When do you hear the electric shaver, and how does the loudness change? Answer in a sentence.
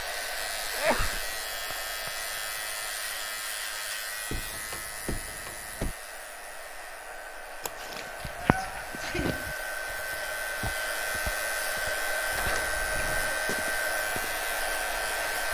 You can hear the electric shaver from 0.0 to 15.5 s, getting quieter then louder.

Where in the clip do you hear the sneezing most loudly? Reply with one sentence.
The loudest moment of the sneezing is at 1 second.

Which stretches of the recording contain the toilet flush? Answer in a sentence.
You can't hear the toilet flush here.